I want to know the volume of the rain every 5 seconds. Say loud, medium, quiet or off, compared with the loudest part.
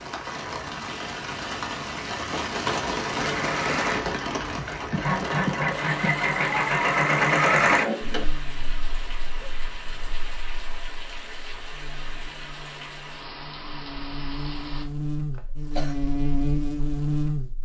loud, medium, medium, off.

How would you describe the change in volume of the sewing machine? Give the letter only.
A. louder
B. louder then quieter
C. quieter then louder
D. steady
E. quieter
A.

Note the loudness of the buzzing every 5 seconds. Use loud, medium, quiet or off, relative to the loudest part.
off, quiet, quiet, loud.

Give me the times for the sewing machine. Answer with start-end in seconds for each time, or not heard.
3.2-8.2.